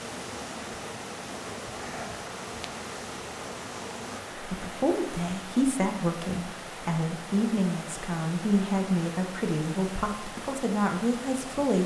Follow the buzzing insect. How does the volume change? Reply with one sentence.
The loudness of the buzzing insect stays about the same.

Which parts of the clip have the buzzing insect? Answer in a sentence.
The buzzing insect can be heard from 0.0 to 4.2 s.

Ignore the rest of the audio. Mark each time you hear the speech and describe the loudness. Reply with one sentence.
You can hear the speech from 4.3 to 11.8 s, at a steady volume.